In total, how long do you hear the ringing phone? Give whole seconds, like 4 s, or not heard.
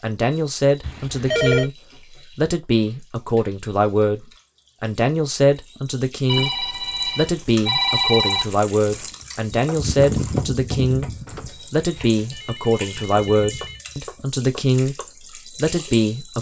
6 s.